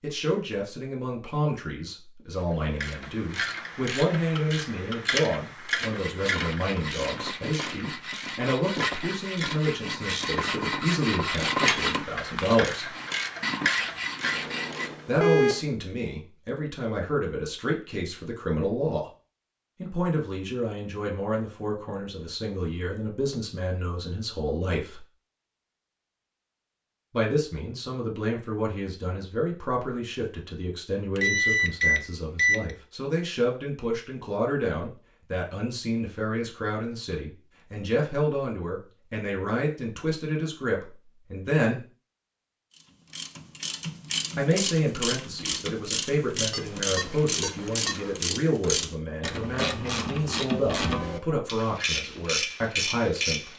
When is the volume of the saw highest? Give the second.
12 s.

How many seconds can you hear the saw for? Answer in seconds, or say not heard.
9 s.